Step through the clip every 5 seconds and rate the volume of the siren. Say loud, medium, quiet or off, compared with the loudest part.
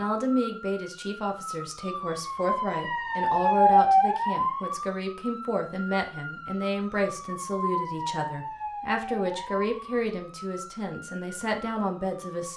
loud, medium, quiet.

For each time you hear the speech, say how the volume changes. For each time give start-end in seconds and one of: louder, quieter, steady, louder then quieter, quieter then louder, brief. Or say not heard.
0.0-12.5 steady.